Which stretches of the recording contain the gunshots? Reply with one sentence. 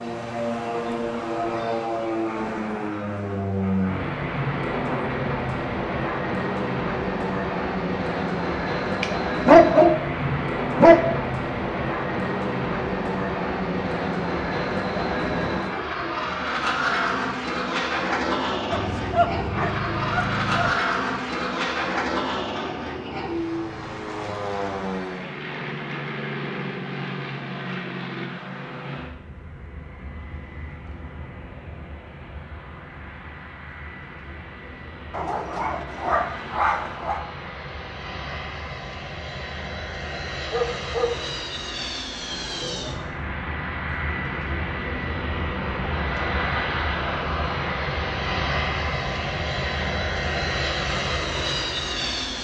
The gunshots can't be heard in this clip.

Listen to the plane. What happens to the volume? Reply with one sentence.
The volume of the plane goes down, then up.